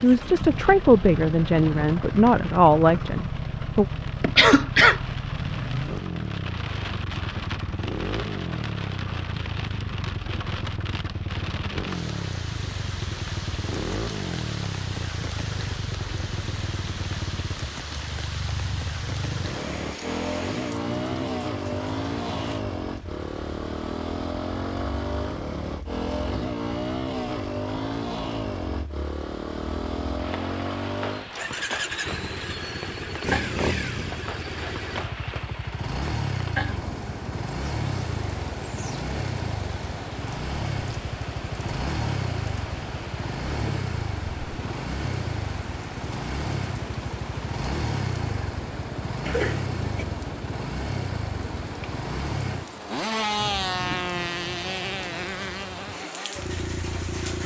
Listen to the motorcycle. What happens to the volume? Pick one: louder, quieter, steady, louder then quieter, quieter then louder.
steady.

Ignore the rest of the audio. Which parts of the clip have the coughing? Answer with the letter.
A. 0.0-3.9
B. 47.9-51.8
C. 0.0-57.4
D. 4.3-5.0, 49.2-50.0
D.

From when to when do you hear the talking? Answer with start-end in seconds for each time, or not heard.
0.0-3.9.